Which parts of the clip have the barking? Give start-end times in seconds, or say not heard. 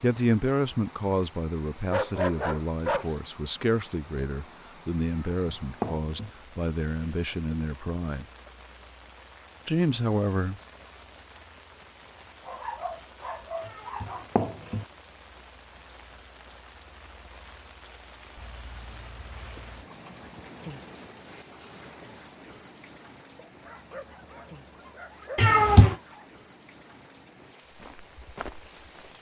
1.9-3.1, 12.4-14.4, 23.4-26.2.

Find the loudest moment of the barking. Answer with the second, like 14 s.
2 s.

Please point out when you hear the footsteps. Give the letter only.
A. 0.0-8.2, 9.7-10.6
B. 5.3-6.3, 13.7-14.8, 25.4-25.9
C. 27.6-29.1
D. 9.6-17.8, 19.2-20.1
C.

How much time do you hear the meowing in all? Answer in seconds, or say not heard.
3 s.